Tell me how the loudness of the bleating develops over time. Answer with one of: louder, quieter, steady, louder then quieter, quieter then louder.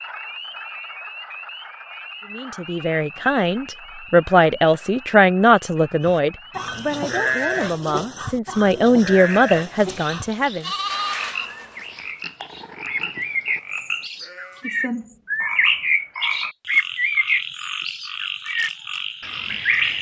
quieter.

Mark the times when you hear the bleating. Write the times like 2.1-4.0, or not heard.
6.0-14.7.